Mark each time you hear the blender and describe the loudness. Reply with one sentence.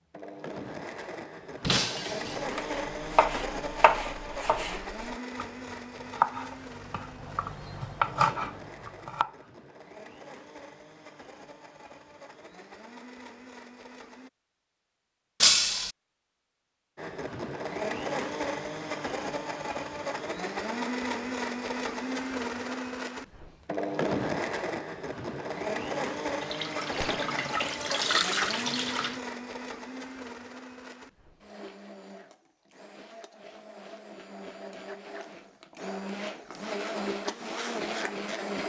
You can hear the blender from 0.1 to 14.3 s, getting quieter; and from 16.9 to 38.6 s, getting quieter then louder.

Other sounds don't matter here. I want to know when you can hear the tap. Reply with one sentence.
The tap can be heard from 26.4 to 29.2 s.